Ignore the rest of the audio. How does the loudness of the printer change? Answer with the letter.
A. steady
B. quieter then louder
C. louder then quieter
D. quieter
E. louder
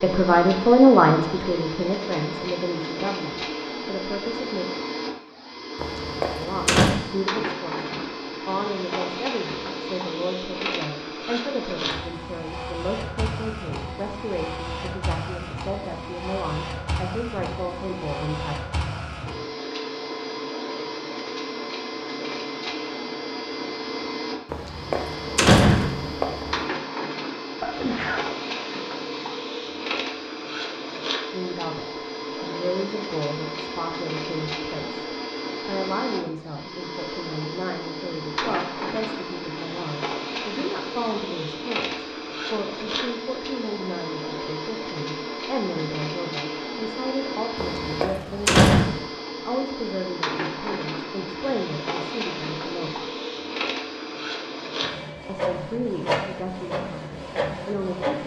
A.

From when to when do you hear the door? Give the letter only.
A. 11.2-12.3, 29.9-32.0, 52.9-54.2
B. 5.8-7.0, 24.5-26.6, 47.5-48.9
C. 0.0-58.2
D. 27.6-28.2
B.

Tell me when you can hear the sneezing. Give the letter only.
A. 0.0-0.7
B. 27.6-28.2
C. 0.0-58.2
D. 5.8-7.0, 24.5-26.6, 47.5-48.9
B.